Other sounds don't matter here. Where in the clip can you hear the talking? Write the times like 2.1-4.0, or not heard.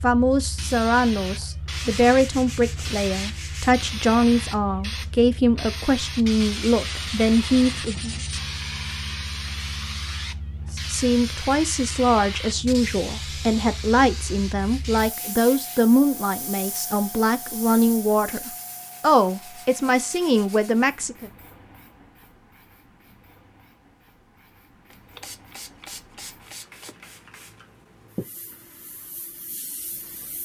0.0-8.2, 10.7-21.3.